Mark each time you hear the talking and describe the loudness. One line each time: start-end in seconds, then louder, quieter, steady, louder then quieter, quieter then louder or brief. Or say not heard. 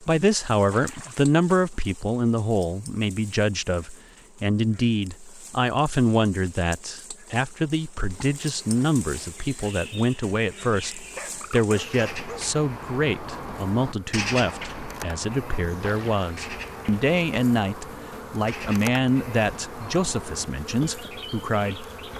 0.0-21.9 steady.